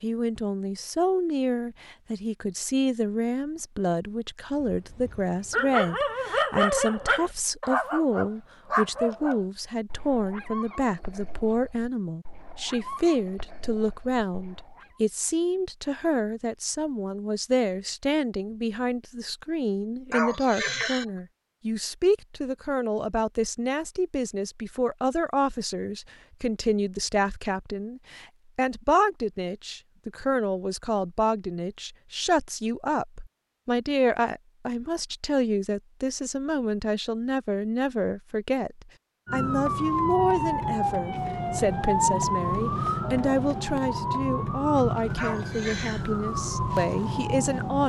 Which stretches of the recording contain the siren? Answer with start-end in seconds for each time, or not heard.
39.2-47.8.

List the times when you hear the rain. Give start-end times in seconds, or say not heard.
not heard.